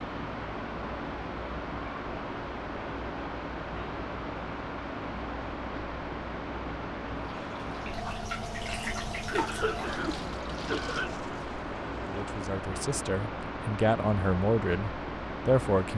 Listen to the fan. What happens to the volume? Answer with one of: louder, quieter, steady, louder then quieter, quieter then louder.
steady.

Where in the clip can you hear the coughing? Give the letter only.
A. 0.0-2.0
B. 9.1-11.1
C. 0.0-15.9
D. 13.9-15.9
B.